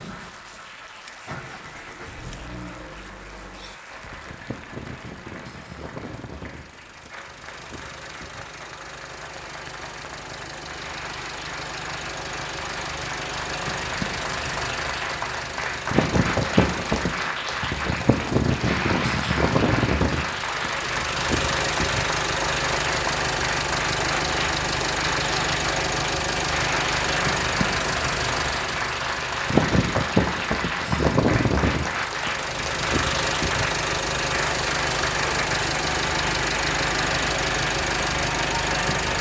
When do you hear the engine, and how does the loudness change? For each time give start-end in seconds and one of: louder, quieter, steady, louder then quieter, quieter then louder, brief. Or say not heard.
0.0-39.1 louder.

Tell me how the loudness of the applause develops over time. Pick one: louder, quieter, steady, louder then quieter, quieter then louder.
louder.